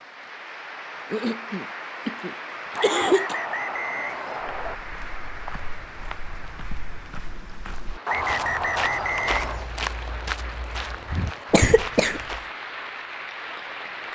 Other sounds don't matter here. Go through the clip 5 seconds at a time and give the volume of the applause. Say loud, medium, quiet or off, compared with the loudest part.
loud, medium, loud.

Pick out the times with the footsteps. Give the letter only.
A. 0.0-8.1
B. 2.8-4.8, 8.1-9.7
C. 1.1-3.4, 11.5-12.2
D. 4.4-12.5
D.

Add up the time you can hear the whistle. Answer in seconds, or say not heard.
4 s.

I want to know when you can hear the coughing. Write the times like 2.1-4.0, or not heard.
1.1-3.4, 11.5-12.2.